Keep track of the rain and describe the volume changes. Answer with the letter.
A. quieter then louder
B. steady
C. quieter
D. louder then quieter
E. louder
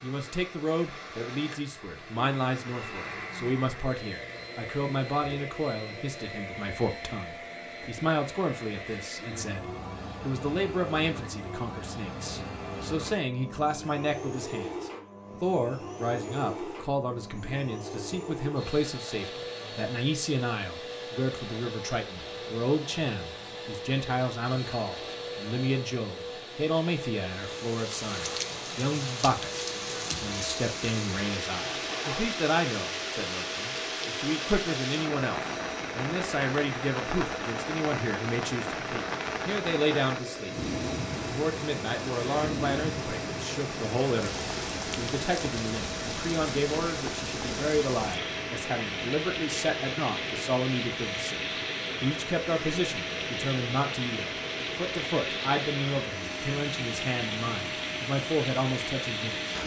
B.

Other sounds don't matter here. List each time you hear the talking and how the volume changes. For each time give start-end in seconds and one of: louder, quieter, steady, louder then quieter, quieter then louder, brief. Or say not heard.
0.0-59.5 steady.